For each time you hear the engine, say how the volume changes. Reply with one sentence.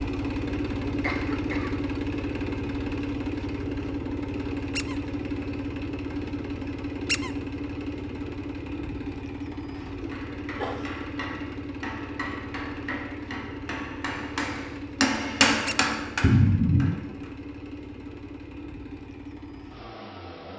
The engine can be heard from 0.0 to 20.5 s, getting quieter.